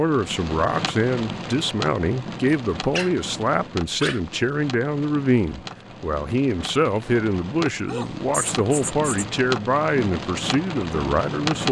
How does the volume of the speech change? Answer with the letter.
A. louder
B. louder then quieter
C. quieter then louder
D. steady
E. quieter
D.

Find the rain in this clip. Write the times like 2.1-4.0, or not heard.
0.0-11.6.